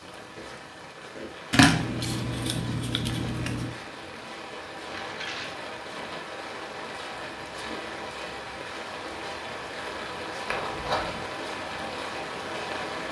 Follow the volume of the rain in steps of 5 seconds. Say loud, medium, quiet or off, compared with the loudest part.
medium, loud, loud.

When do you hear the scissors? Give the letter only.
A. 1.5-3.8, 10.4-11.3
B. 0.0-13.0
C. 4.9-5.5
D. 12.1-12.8
A.